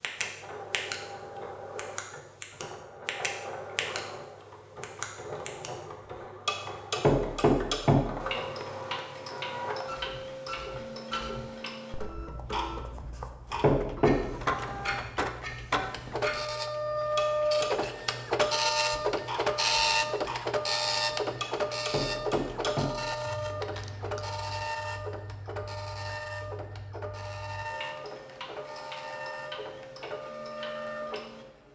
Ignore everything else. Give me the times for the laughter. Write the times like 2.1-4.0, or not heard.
not heard.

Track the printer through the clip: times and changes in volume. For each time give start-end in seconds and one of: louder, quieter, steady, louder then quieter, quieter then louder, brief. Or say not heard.
0.0-31.7 louder then quieter.